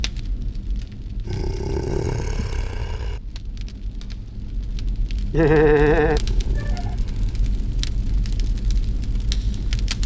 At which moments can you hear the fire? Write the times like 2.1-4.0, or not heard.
0.0-10.0.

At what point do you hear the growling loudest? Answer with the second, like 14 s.
2 s.